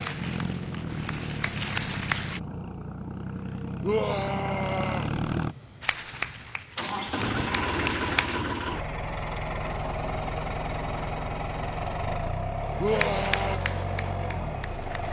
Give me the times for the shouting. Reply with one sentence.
You can hear the shouting from 3.8 to 5.1 s and from 12.8 to 13.6 s.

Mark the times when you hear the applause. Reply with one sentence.
The applause can be heard from 0.0 to 2.4 s, from 5.8 to 8.4 s and from 12.8 to 15.0 s.